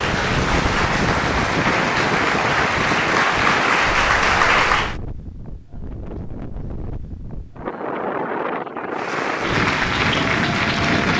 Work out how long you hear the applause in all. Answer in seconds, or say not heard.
7 s.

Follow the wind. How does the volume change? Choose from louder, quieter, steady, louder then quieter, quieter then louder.
quieter then louder.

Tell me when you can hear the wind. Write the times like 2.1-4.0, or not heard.
0.0-11.1.